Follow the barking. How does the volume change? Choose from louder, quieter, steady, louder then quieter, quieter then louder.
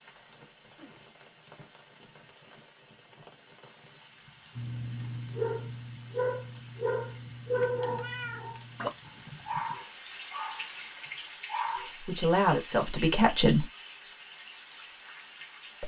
quieter.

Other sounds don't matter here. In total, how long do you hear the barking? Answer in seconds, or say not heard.
7 s.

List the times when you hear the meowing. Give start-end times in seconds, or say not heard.
8.0-8.4.